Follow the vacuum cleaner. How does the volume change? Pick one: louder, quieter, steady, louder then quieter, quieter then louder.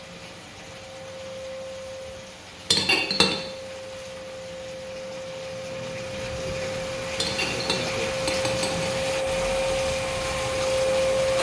louder.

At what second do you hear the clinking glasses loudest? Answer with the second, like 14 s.
3 s.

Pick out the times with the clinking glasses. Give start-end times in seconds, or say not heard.
2.7-3.4, 7.2-8.9.